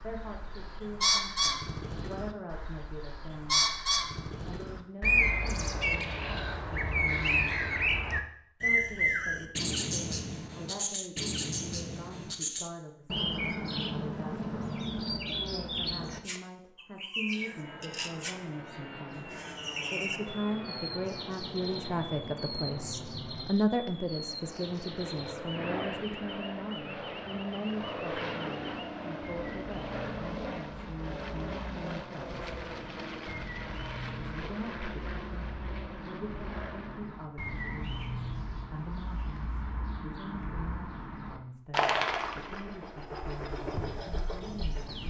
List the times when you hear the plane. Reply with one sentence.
You can hear the plane from 17.2 to 37.2 s.